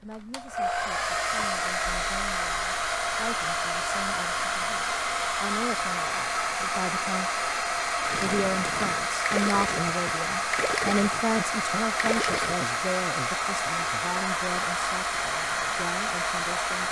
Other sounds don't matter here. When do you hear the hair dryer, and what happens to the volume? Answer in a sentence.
The hair dryer can be heard from 0.1 to 16.8 s, at a steady volume.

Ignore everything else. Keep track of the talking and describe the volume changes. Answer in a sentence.
The loudness of the talking goes up, then down.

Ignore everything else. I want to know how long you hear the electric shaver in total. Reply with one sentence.
You can't hear the electric shaver here.